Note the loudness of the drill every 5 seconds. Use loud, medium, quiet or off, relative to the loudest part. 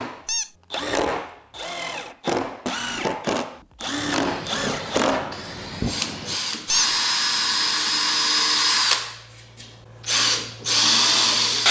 medium, loud, loud.